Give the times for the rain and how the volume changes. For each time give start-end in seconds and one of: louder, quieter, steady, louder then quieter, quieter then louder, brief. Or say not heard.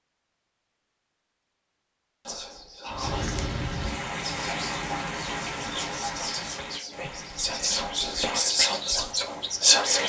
2.9-9.8 quieter.